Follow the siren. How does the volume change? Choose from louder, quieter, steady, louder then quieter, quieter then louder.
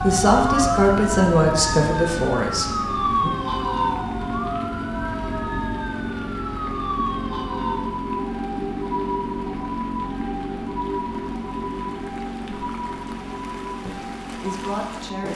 quieter.